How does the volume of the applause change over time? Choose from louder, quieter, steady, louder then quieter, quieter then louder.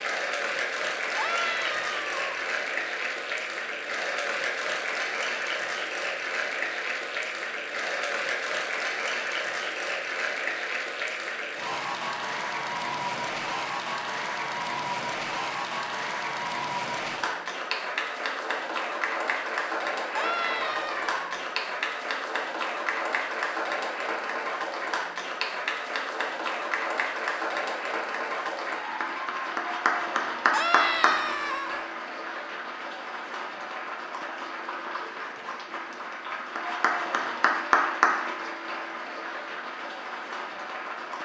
steady.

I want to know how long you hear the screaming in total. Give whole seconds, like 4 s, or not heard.
4 s.